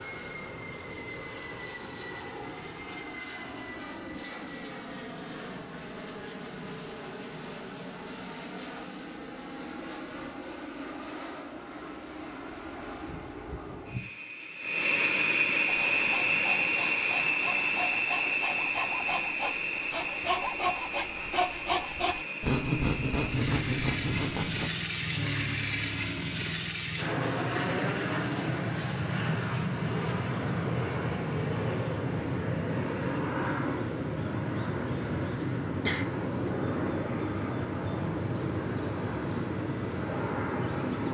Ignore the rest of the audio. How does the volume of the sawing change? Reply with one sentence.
The volume of the sawing goes up.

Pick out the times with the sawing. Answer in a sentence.
The sawing can be heard from 15.7 to 24.7 s.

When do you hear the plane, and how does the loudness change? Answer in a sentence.
You can hear the plane from 0.0 to 41.0 s, getting louder.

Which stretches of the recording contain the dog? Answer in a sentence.
The dog can't be heard in this clip.